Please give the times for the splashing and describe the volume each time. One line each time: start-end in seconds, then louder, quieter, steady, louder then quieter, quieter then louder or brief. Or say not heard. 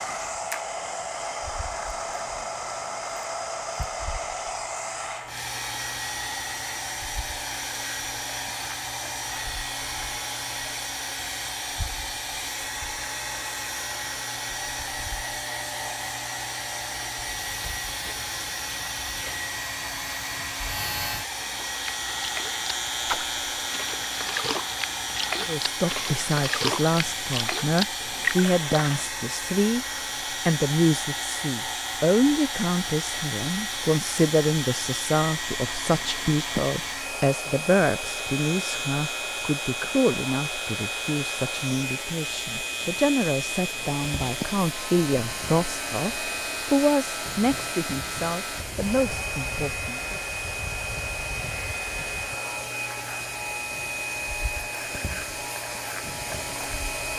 21.6-29.1 louder.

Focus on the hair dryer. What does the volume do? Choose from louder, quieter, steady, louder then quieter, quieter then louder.
steady.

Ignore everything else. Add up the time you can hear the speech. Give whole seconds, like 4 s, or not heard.
24 s.